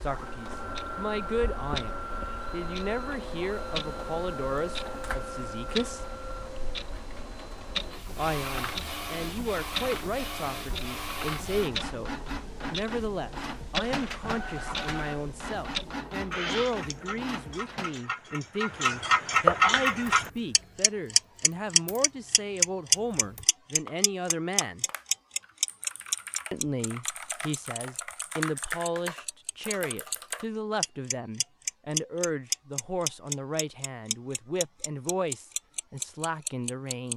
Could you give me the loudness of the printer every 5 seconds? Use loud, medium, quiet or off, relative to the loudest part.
loud, loud, loud, loud, off, off, off, off.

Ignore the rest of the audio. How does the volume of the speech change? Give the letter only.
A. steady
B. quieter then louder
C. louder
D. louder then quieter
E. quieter
A.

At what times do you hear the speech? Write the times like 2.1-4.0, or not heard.
0.0-6.0, 8.2-24.9, 26.5-37.1.